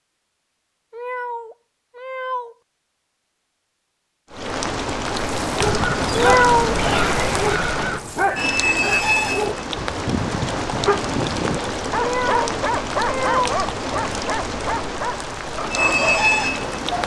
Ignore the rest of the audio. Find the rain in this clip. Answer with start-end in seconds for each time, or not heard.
4.3-17.0.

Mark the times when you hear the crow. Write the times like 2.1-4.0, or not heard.
5.6-9.0.